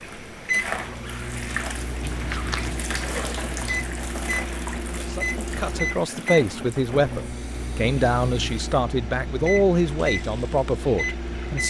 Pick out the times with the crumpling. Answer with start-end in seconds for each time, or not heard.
2.1-2.7.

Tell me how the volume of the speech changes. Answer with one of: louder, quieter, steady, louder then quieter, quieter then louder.
steady.